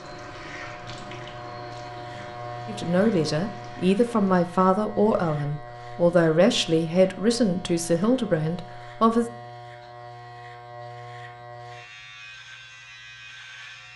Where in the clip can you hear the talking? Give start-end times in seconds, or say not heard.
2.6-9.2.